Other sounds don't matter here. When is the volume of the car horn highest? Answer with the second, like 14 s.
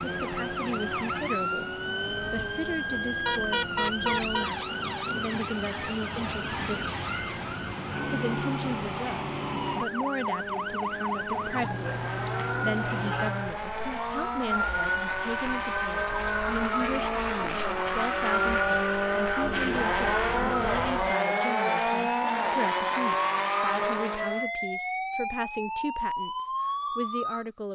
4 s.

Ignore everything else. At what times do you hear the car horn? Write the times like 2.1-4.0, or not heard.
3.2-4.5, 11.2-13.3, 19.4-20.9.